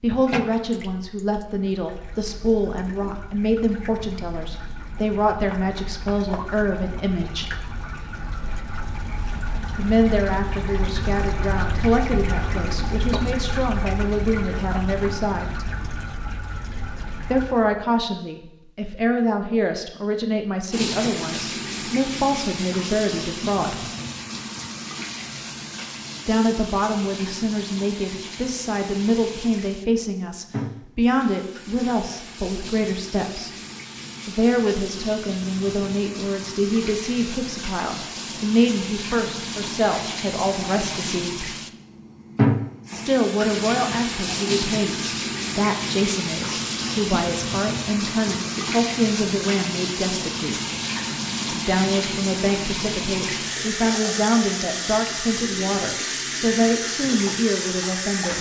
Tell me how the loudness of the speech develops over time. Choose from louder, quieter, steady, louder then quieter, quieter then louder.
steady.